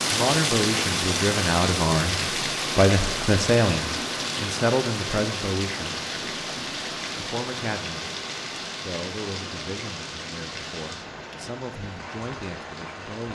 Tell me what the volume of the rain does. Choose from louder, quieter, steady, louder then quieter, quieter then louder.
quieter.